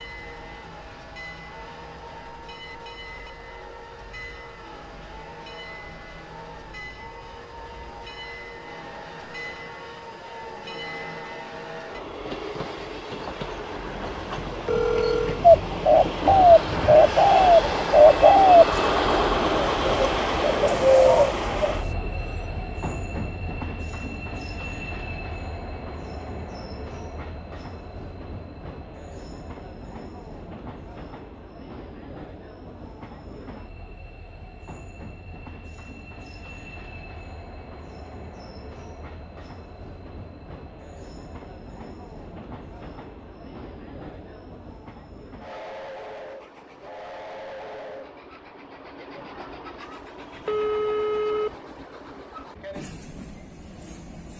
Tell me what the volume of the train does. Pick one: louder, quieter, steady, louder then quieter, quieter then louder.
louder then quieter.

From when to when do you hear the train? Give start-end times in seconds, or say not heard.
0.0-54.3.